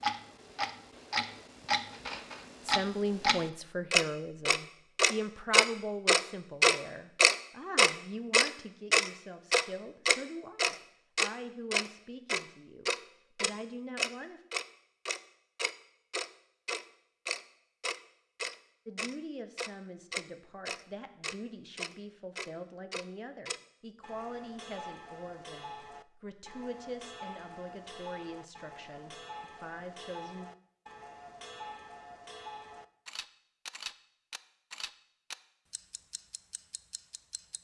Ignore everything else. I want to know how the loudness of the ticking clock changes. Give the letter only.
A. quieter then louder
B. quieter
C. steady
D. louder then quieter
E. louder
B.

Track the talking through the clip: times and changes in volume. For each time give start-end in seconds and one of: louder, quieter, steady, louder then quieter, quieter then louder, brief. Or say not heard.
2.6-14.4 quieter
18.9-30.5 steady.